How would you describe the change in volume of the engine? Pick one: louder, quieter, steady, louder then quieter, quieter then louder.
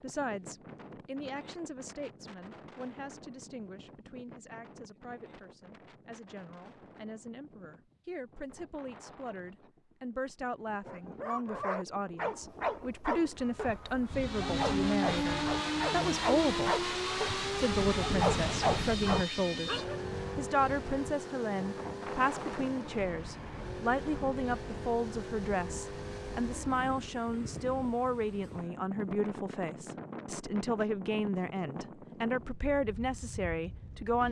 quieter.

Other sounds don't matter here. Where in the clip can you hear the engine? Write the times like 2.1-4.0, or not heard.
14.1-26.9.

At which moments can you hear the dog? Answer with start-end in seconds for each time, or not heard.
10.8-20.0.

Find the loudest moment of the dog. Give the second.
18 s.